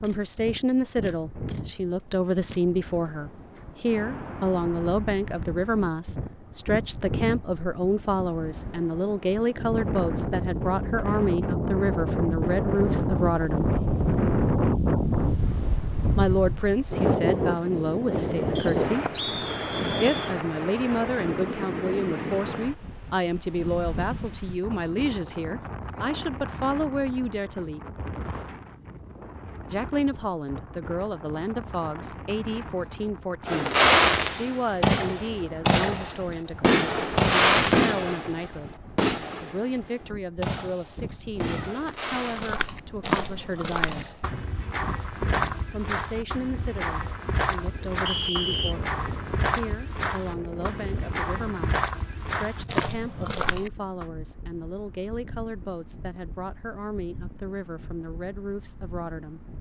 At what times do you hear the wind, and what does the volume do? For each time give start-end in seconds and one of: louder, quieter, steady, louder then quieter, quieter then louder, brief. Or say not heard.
0.0-59.5 louder then quieter.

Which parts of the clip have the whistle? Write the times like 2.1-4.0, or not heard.
18.6-20.4, 48.0-48.8.